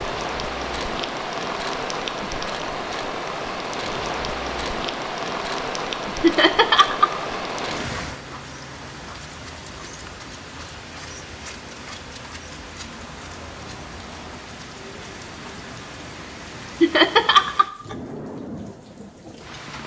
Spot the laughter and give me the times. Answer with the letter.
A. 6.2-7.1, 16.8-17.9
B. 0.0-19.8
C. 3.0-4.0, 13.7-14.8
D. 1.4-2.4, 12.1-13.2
A.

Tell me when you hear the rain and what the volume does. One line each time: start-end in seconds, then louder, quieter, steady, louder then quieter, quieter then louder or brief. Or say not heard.
0.0-19.8 quieter.